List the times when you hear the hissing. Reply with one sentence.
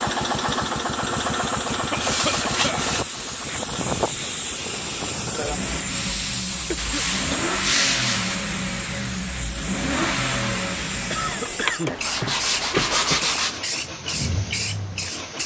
You can hear the hissing from 0.0 to 15.4 s.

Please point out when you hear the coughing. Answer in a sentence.
You can hear the coughing from 1.7 to 3.0 s, from 6.7 to 7.5 s and from 11.1 to 12.0 s.